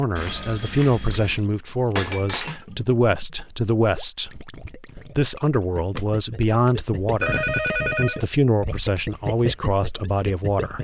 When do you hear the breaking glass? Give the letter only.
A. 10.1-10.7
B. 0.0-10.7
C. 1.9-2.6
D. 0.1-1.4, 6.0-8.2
C.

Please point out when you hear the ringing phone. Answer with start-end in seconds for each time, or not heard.
0.1-1.4, 6.0-8.2.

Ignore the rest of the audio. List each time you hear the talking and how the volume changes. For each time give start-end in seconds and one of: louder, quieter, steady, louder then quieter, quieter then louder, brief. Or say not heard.
0.0-10.7 steady.